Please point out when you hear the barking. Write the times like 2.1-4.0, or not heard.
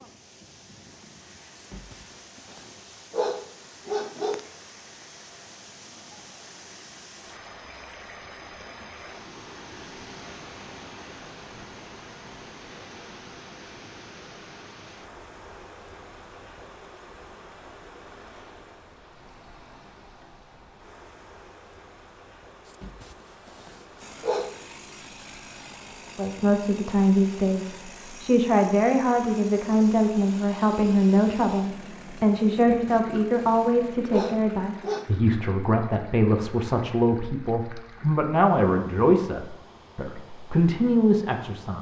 1.6-4.5, 22.6-24.6, 32.6-35.1.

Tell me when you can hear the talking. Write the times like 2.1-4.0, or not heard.
26.1-41.7.